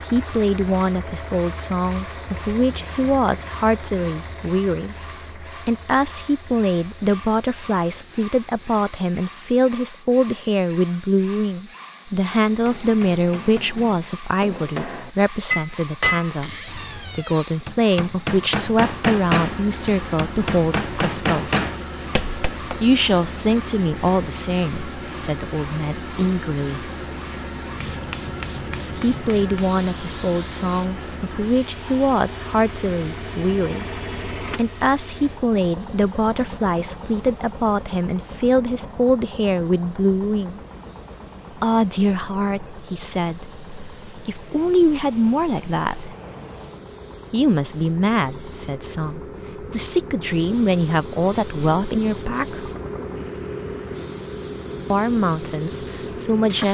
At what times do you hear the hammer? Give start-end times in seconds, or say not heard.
12.3-22.8.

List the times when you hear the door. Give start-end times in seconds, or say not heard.
16.4-17.6.